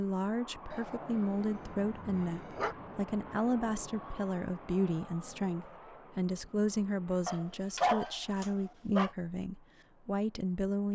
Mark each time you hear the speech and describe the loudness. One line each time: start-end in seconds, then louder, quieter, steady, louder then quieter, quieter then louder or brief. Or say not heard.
0.0-10.9 steady.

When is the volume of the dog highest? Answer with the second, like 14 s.
8 s.